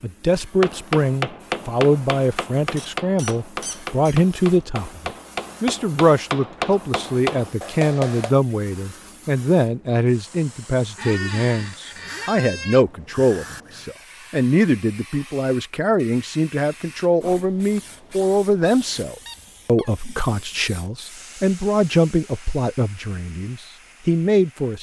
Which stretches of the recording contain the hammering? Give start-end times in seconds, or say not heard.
0.6-8.3.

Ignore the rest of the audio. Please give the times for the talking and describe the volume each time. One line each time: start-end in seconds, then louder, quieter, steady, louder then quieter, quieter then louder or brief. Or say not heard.
0.0-24.7 steady.